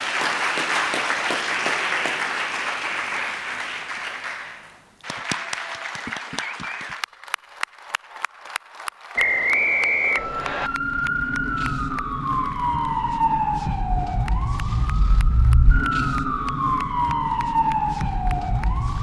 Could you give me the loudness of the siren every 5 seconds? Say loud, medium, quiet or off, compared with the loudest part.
off, off, loud, loud.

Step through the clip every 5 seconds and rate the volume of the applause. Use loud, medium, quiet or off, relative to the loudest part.
loud, medium, quiet, quiet.